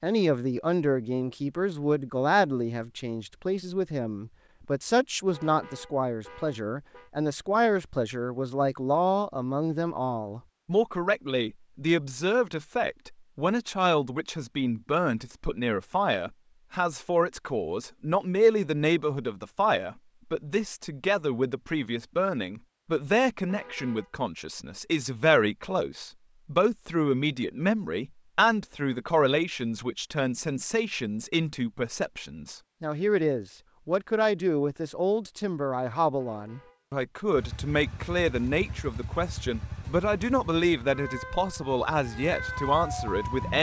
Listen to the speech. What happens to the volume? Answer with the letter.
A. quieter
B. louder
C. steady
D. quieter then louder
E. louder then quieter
C.